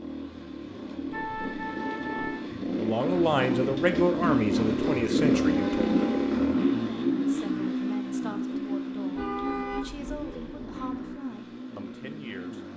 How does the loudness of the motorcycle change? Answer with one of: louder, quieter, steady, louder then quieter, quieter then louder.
louder then quieter.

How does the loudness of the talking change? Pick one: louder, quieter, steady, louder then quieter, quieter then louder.
quieter.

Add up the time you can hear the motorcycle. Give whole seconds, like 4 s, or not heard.
13 s.